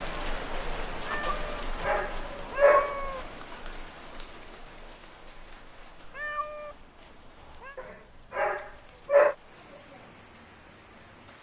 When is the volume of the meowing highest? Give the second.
3 s.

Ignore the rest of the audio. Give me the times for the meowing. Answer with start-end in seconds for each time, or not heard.
1.1-1.6, 2.4-3.3, 6.0-7.8.